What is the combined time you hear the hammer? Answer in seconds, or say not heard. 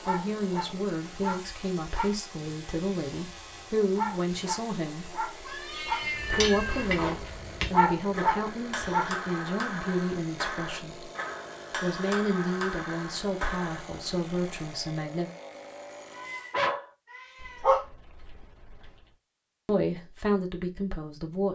8 s.